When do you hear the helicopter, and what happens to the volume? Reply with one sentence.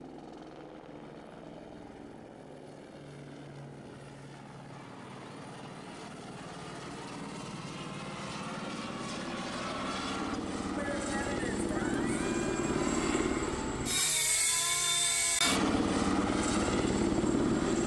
You can hear the helicopter from 0.0 to 17.8 s, getting louder.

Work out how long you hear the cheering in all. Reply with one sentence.
You can hear the cheering for 9 seconds altogether.